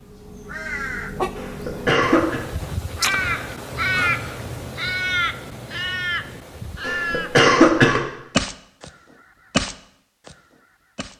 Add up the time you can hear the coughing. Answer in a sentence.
You can hear the coughing for 2 seconds altogether.